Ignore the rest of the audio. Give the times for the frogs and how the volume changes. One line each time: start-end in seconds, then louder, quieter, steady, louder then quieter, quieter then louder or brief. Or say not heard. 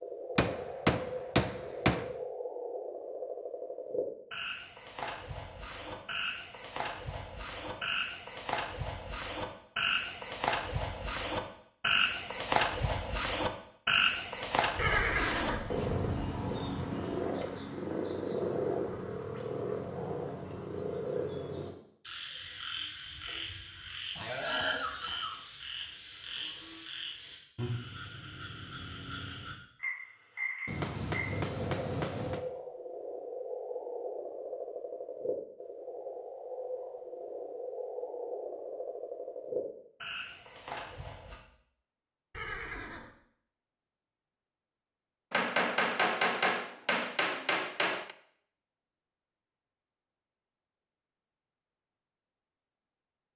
0.0-41.4 louder then quieter.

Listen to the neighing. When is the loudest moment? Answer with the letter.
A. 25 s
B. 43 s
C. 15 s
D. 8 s
C.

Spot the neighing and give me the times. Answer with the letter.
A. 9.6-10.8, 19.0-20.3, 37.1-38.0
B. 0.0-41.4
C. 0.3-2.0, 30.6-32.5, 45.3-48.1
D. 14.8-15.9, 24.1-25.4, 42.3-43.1
D.